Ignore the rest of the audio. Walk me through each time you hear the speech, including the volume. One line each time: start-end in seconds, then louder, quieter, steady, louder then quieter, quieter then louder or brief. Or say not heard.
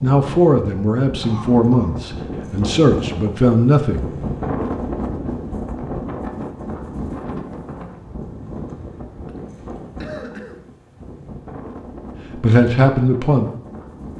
0.0-4.1 steady
12.3-13.5 brief.